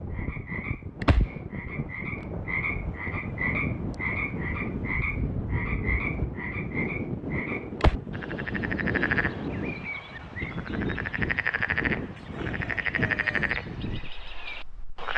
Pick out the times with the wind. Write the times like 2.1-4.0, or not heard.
0.0-15.1.